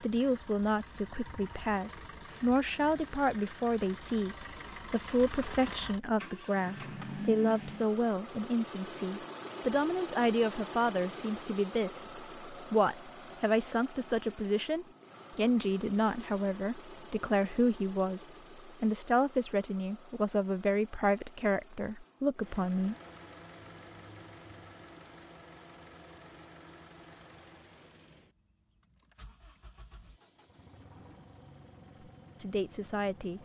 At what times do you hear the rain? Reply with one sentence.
The rain can't be heard in this clip.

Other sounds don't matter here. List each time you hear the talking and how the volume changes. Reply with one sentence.
You can hear the talking from 0.0 to 22.9 s, at a steady volume; and briefly from 32.4 to 33.4 s.